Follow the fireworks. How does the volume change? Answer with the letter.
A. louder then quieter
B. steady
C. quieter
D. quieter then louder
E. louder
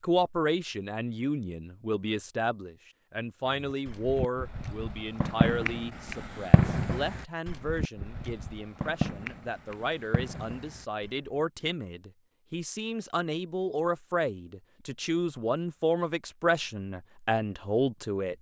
A.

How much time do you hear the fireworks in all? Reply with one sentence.
The fireworks can be heard for 8 seconds in total.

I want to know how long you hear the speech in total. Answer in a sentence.
The speech can be heard for 18 seconds in total.